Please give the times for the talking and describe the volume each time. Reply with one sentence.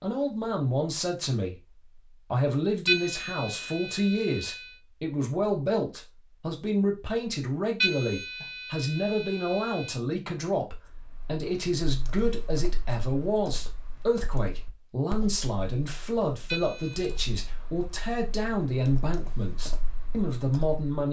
You can hear the talking from 0.0 to 21.0 s, at a steady volume.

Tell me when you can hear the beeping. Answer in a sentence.
You can hear the beeping from 2.9 to 4.7 s, from 7.8 to 9.9 s and from 16.4 to 17.2 s.